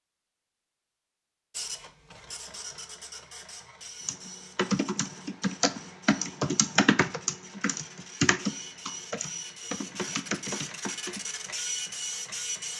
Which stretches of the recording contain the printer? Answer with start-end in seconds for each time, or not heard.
1.5-12.7.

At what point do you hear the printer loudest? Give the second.
12 s.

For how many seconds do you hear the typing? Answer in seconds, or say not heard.
7 s.